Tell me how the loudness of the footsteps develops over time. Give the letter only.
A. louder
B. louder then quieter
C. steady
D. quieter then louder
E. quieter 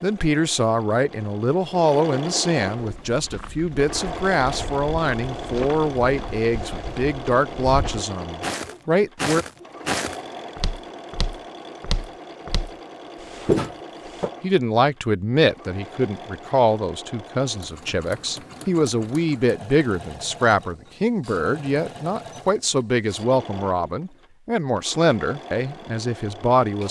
A.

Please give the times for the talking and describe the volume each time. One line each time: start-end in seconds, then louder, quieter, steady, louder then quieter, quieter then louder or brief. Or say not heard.
0.0-9.4 steady
14.4-26.8 steady.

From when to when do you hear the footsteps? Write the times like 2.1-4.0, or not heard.
2.8-14.3.